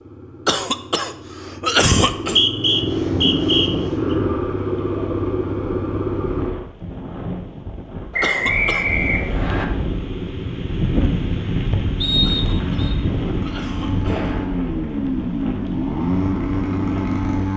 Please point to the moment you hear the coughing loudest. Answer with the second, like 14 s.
2 s.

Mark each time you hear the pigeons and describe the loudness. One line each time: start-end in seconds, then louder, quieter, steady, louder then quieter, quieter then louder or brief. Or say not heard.
not heard.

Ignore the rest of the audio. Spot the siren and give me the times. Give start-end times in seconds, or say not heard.
not heard.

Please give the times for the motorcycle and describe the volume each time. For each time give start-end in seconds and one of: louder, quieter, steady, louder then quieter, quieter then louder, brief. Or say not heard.
0.0-6.5 louder
9.5-17.5 louder.